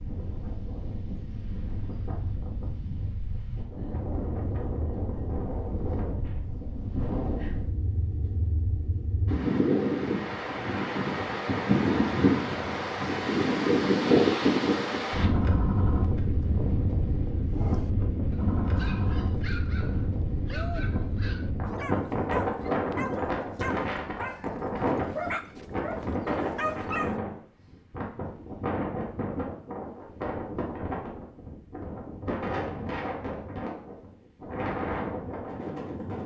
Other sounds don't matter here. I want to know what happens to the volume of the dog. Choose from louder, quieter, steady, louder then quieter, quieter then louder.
louder.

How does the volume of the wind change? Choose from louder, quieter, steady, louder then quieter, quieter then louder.
louder then quieter.